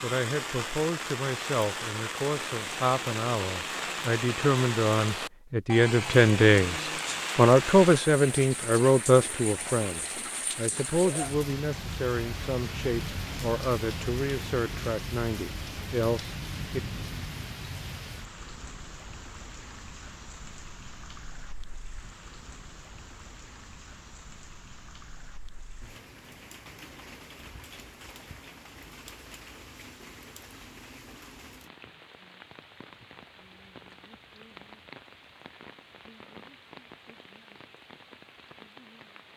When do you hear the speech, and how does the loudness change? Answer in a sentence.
You can hear the speech from 0.0 to 16.8 s, getting louder then quieter.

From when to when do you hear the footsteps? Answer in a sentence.
The footsteps can't be heard in this clip.